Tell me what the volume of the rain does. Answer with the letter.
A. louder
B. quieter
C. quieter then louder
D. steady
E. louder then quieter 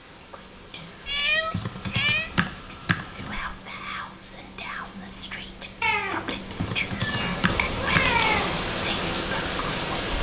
A.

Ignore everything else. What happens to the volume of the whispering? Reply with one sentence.
The volume of the whispering goes up.